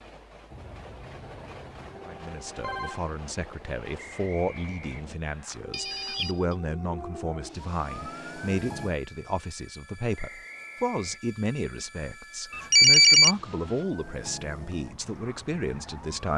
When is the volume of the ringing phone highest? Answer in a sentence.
The loudest moment of the ringing phone is at 13 seconds.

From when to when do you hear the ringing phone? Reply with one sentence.
The ringing phone can be heard from 1.8 to 3.0 s, from 5.5 to 6.5 s and from 12.5 to 13.3 s.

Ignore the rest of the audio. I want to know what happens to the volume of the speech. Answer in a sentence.
The loudness of the speech stays about the same.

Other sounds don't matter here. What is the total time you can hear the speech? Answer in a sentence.
The speech can be heard for 14 seconds in total.